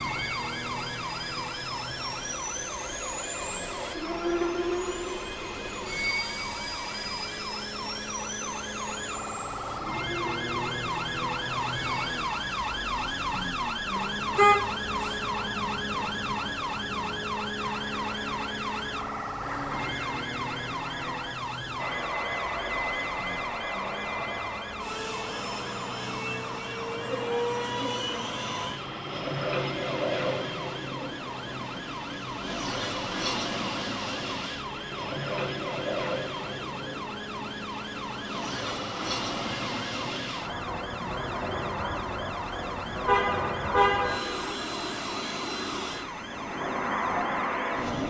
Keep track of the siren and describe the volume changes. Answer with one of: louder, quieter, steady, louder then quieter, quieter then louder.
louder then quieter.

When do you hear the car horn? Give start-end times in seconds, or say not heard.
13.9-15.2, 43.0-44.5.